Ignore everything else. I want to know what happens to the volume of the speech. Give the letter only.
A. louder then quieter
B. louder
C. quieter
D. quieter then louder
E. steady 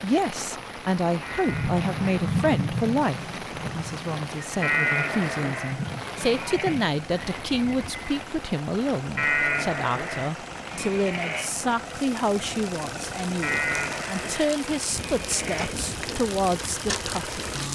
E.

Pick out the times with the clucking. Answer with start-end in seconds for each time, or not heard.
not heard.